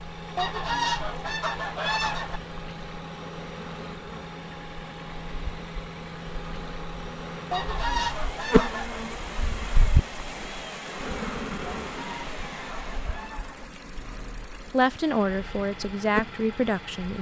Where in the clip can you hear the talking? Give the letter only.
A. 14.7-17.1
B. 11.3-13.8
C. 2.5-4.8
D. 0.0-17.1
A.